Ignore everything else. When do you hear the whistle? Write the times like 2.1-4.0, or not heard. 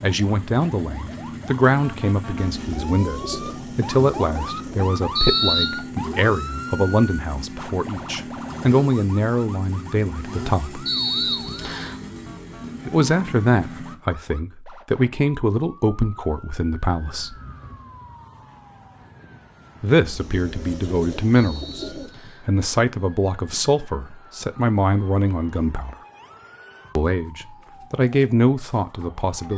5.2-5.8, 10.8-11.9, 21.4-22.4.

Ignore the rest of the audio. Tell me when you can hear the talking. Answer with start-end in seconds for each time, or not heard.
0.0-10.8, 12.8-17.4, 19.8-25.9, 26.9-29.5.